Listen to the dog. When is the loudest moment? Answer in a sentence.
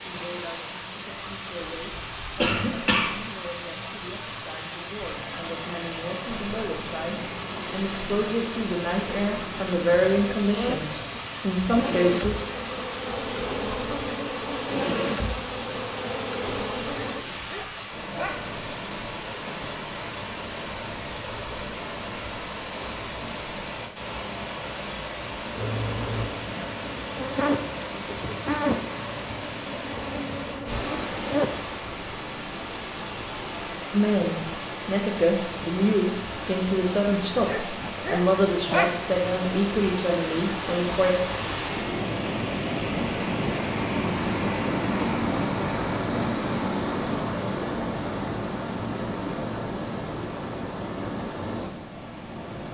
The volume of the dog peaks at 39 seconds.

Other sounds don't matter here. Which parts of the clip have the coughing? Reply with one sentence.
The coughing can be heard from 2.4 to 3.1 s.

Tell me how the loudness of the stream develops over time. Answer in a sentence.
The loudness of the stream goes up.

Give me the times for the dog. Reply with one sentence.
You can hear the dog from 17.1 to 18.4 s and from 37.5 to 39.3 s.